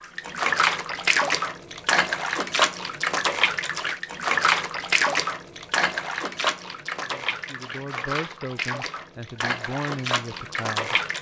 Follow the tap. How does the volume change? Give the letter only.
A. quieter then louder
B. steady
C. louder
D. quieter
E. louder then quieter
D.